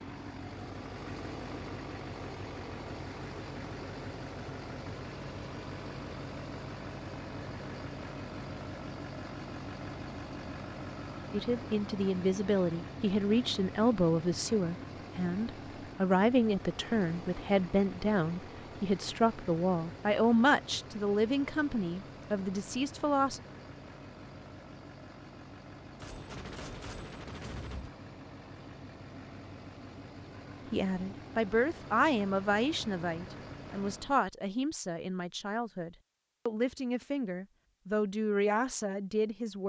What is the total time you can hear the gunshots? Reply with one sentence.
The gunshots can be heard for 2 seconds in total.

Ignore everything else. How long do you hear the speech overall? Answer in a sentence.
The speech can be heard for 21 seconds in total.